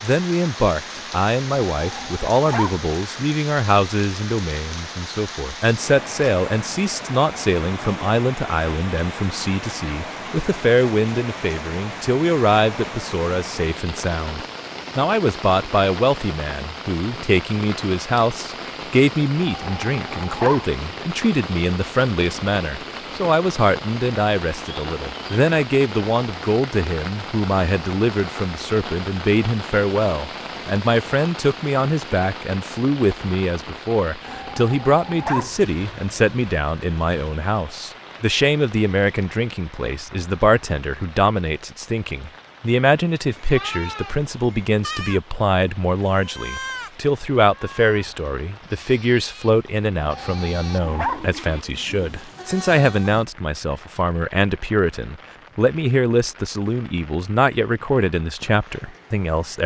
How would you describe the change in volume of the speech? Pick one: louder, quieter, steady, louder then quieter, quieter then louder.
steady.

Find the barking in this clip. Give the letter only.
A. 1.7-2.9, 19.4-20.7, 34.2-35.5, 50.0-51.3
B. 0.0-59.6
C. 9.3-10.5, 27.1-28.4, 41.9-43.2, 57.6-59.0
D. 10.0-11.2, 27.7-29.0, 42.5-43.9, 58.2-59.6
A.